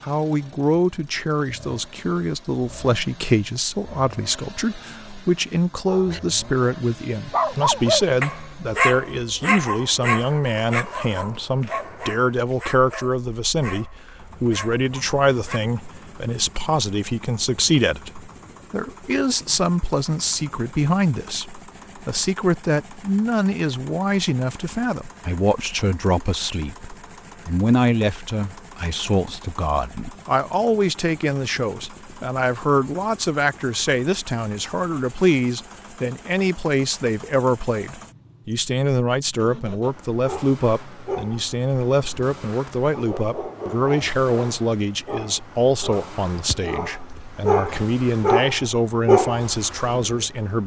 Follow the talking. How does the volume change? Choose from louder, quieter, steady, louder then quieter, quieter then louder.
steady.